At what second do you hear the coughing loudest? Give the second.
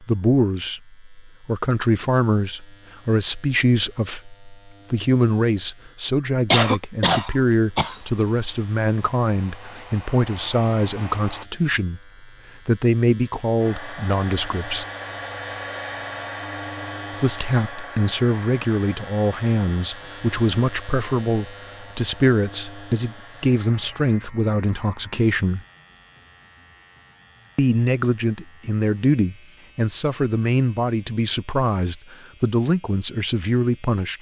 7 s.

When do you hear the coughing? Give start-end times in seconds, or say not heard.
6.5-8.0.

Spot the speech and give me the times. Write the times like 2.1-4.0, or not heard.
0.0-14.8, 17.2-25.6, 27.6-34.1.